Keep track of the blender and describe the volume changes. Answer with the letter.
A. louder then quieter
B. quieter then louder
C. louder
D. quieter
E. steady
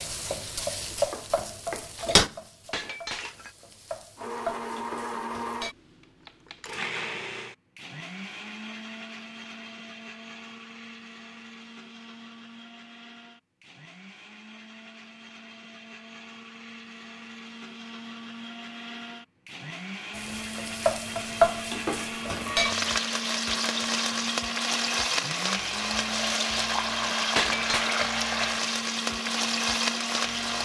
B.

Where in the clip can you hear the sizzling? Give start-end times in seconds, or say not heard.
0.0-5.8, 20.1-30.5.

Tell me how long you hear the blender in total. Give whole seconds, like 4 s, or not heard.
26 s.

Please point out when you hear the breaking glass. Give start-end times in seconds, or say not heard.
2.7-3.5, 27.4-27.9.